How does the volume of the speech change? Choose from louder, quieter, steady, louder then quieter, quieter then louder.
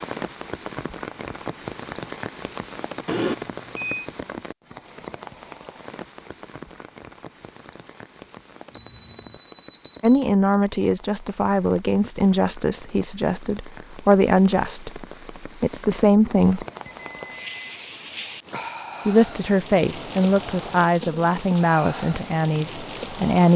steady.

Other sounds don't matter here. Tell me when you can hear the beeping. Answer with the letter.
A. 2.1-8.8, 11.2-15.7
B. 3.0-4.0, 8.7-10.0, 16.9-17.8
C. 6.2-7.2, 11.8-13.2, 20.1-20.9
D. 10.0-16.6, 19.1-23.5
B.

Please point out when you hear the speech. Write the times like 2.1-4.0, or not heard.
10.0-16.6, 19.1-23.5.